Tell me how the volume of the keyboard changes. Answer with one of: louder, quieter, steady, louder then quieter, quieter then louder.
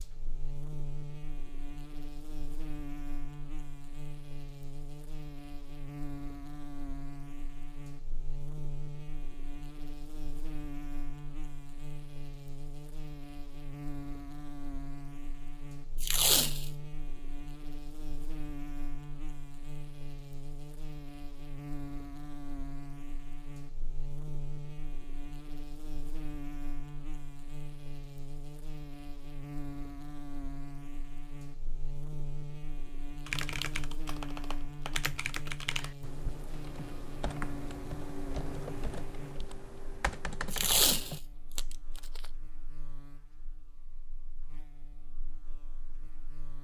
steady.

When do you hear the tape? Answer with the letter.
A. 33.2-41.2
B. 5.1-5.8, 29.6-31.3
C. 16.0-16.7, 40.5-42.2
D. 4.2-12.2
C.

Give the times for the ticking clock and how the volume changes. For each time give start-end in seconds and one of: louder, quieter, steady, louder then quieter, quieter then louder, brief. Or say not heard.
not heard.